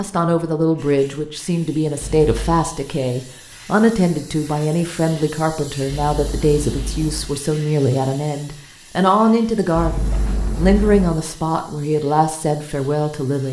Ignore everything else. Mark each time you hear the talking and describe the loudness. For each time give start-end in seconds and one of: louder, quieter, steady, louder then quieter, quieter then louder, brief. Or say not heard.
0.0-13.4 steady.